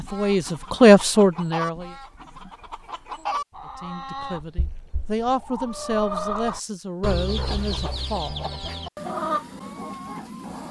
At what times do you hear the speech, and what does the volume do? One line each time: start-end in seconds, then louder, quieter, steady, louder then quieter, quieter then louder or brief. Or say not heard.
0.0-1.9 brief
3.6-8.5 louder then quieter.